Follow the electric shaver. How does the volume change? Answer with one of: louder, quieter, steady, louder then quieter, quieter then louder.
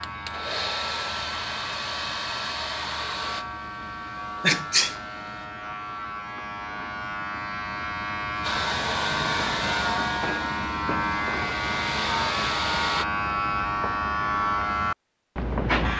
louder.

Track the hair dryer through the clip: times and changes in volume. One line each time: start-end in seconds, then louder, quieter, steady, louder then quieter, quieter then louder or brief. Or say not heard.
0.0-5.5 quieter
8.4-13.1 quieter then louder.